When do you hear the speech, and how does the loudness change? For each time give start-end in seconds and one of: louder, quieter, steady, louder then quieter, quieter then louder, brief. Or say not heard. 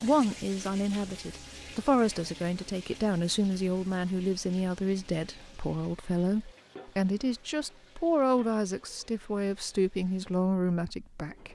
0.0-11.5 steady.